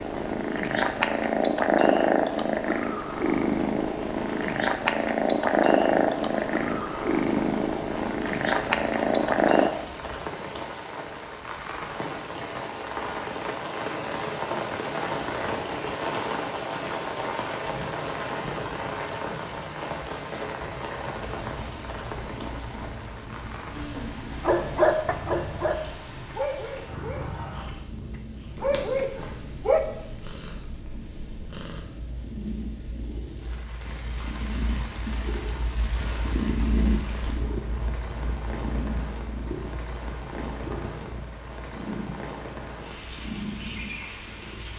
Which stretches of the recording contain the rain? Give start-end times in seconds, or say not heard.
0.0-44.7.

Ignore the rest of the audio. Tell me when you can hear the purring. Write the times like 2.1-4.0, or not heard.
0.0-9.7, 20.6-44.7.